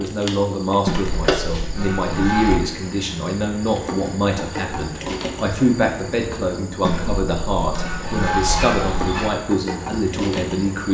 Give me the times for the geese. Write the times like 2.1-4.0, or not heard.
0.8-2.6, 6.8-9.3.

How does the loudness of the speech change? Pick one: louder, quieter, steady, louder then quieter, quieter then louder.
steady.